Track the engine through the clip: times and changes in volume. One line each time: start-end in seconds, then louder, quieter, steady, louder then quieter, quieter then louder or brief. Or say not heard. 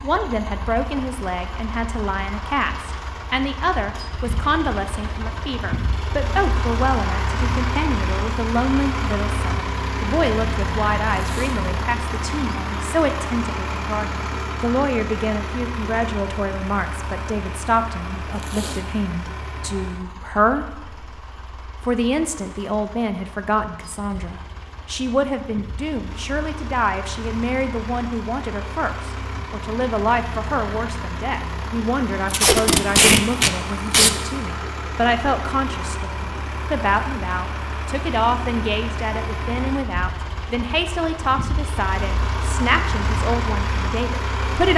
0.0-44.7 quieter then louder.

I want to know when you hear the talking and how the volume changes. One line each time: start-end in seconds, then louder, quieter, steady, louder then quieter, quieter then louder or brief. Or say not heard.
0.0-21.0 steady
21.8-44.7 steady.